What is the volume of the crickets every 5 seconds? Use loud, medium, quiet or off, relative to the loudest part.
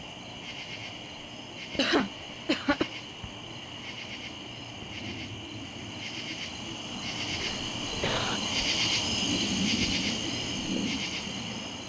medium, loud, loud.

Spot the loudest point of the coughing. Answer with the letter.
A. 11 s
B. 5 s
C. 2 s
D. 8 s
C.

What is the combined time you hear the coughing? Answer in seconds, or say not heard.
2 s.